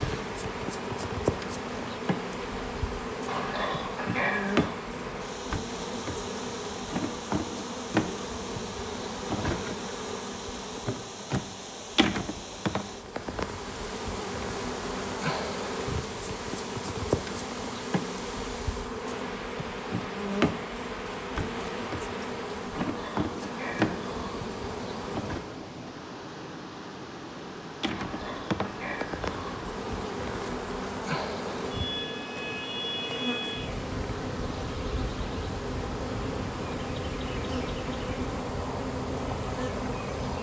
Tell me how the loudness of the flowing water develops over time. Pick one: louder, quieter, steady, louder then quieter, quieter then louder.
steady.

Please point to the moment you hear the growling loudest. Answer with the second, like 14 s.
4 s.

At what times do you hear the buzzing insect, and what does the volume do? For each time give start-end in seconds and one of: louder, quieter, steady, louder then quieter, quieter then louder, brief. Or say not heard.
0.0-25.6 steady
27.8-40.3 steady.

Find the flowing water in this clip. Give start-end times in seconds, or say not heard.
0.0-40.3.